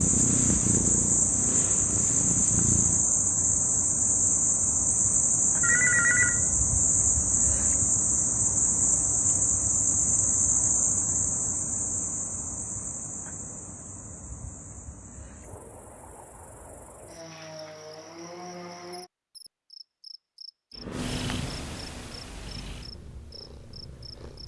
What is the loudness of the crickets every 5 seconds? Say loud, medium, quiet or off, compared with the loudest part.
loud, loud, medium, quiet, quiet.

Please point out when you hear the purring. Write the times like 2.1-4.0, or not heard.
0.0-3.0, 20.8-24.4.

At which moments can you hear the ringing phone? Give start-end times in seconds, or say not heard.
5.6-6.5.